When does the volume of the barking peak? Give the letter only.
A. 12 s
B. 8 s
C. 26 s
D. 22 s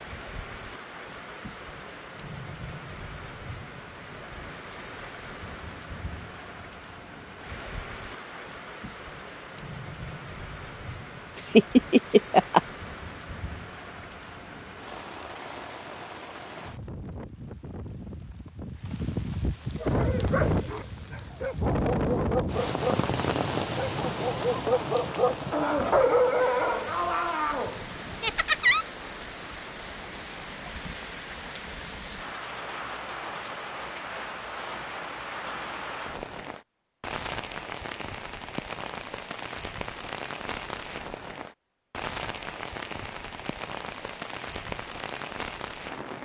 C.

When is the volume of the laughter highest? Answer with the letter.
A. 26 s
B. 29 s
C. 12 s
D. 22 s
C.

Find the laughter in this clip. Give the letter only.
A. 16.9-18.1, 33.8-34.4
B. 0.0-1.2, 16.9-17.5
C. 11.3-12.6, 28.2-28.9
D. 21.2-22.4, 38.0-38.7
C.